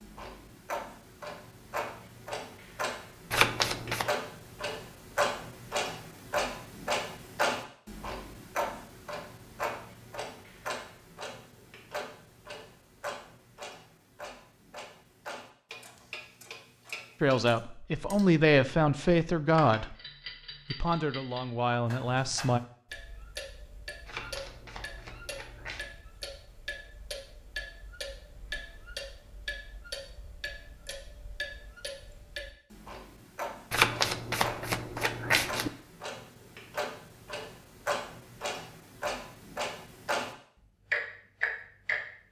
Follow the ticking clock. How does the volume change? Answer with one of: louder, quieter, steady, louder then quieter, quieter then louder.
quieter then louder.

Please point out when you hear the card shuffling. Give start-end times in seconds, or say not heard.
3.3-4.0, 24.1-25.9, 33.7-35.7.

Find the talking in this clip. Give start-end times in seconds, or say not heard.
17.2-19.9, 20.6-22.6.